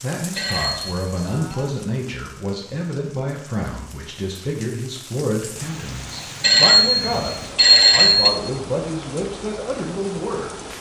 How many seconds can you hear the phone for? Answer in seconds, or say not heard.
3 s.